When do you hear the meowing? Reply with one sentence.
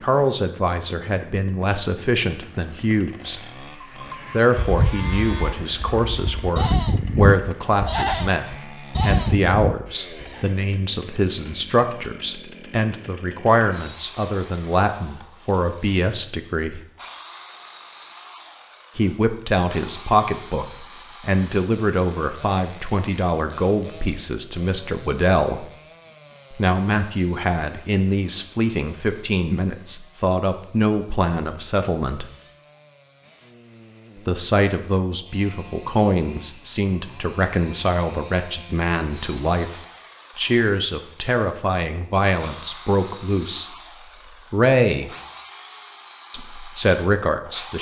The meowing can't be heard in this clip.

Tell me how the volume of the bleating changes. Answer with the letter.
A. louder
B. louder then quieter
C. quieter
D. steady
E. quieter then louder
E.